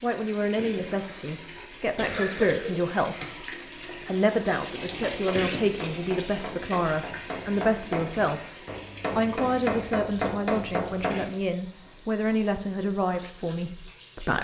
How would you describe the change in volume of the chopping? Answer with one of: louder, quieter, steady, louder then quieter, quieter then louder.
louder.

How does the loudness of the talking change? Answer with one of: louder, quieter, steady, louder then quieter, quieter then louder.
steady.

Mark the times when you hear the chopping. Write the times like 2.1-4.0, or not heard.
5.0-11.3.